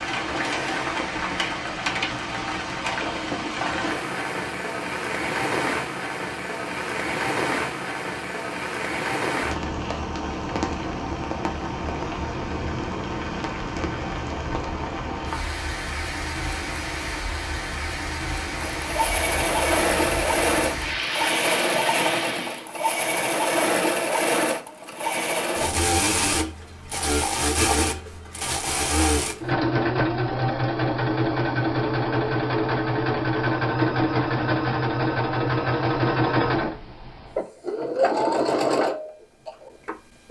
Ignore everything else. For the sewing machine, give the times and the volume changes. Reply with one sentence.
The sewing machine can be heard from 18.6 to 40.2 s, at a steady volume.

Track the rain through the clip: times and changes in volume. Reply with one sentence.
The rain can be heard from 0.0 to 22.6 s, at a steady volume.